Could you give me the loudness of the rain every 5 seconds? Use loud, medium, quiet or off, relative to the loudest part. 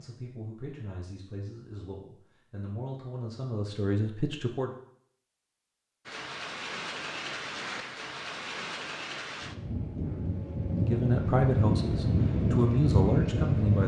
off, medium, loud.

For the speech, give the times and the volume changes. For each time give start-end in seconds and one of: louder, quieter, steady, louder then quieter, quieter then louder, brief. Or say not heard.
0.0-4.7 louder
10.8-13.8 brief.